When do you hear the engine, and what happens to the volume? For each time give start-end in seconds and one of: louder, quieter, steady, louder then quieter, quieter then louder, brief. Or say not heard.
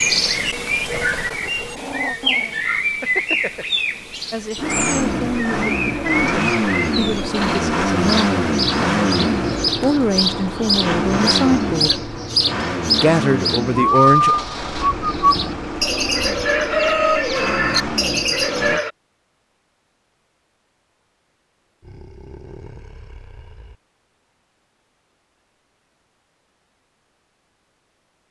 4.5-18.8 quieter.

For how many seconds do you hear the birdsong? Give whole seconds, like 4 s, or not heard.
19 s.